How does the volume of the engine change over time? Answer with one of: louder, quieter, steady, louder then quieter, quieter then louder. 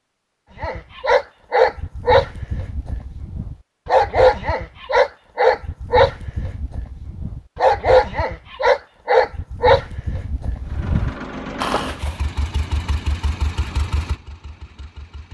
quieter.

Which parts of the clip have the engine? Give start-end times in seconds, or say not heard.
10.7-15.3.